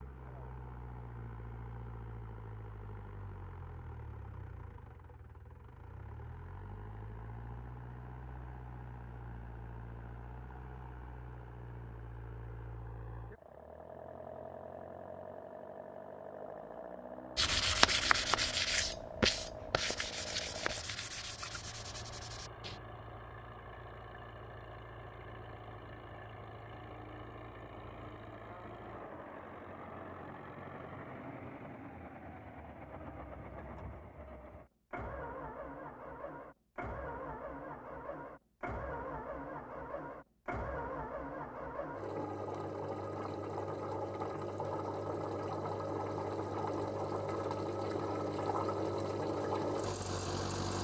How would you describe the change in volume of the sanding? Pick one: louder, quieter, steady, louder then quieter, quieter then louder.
quieter.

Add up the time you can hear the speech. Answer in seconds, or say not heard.
not heard.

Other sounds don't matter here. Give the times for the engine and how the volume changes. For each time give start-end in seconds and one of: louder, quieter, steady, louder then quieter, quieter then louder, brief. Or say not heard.
0.0-50.7 louder.